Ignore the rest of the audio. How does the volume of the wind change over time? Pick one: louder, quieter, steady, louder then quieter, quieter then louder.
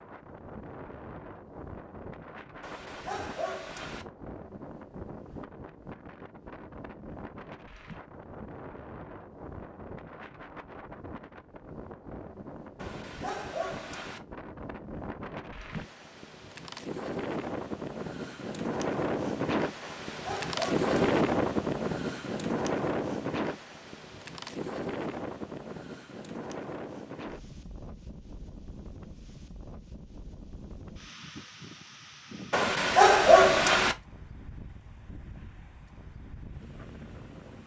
louder then quieter.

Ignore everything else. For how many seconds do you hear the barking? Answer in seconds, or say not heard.
6 s.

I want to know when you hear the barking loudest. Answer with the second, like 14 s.
33 s.